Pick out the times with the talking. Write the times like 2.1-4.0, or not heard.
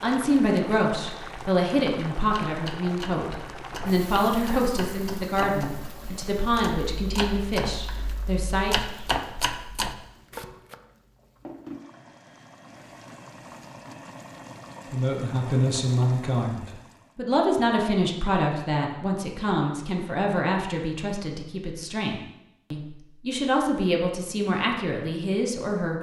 0.0-8.8, 14.9-25.9.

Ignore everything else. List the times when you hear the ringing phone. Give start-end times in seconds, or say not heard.
not heard.